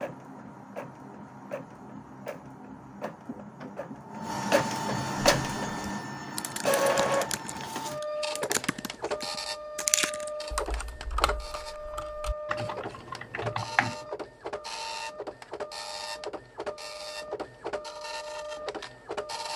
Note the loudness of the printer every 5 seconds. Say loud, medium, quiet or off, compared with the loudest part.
medium, loud, medium, medium.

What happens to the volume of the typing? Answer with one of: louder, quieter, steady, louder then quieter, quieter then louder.
louder then quieter.